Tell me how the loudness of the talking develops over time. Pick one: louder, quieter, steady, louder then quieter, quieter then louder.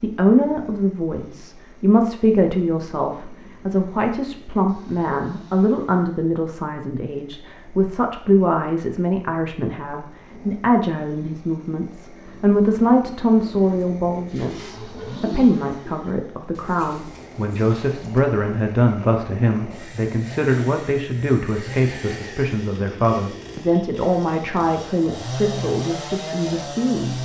steady.